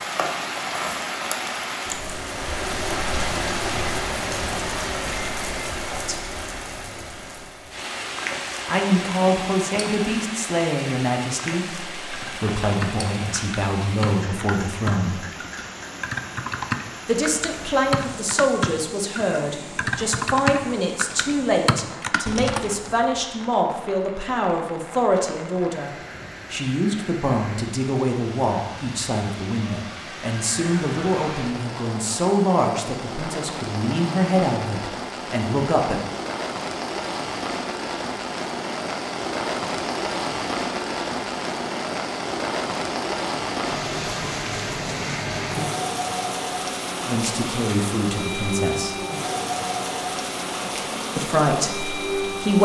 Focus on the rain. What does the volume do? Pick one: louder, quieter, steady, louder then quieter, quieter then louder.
quieter then louder.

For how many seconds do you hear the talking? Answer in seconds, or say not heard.
29 s.